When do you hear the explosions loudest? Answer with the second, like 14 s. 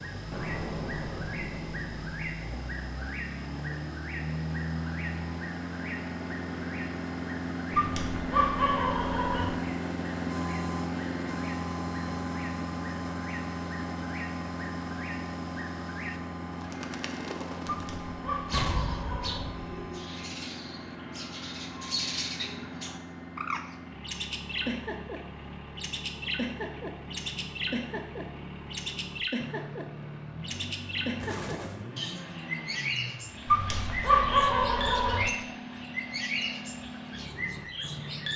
19 s.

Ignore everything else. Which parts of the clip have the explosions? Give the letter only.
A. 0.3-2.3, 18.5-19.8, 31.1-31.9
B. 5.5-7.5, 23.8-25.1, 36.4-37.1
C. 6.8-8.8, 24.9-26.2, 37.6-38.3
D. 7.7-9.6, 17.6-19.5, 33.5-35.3
A.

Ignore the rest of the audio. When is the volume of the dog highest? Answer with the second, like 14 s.
34 s.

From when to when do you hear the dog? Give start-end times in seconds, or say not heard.
7.7-9.6, 17.6-19.5, 33.5-35.3.